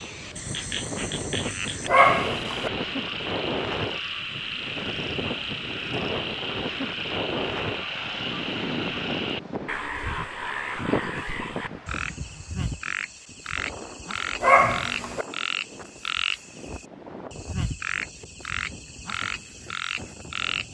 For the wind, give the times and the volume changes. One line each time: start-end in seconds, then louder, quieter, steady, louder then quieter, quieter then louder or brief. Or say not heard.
0.0-20.6 quieter.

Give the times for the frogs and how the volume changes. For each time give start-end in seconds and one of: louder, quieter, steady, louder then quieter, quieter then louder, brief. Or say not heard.
0.0-20.6 steady.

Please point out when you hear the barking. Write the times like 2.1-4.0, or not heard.
1.9-2.7, 14.4-15.2.